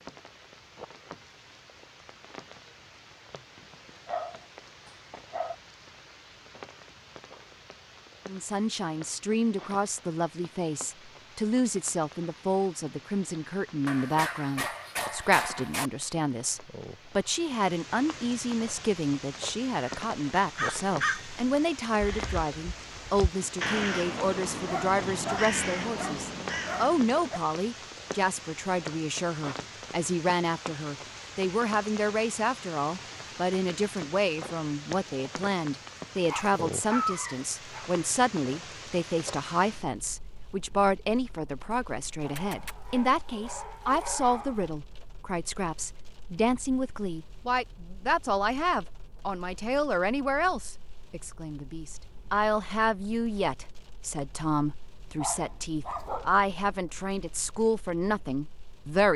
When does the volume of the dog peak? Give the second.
37 s.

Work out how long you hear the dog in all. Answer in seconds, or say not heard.
12 s.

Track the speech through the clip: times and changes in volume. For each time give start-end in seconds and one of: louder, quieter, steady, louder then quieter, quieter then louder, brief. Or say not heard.
8.2-59.1 steady.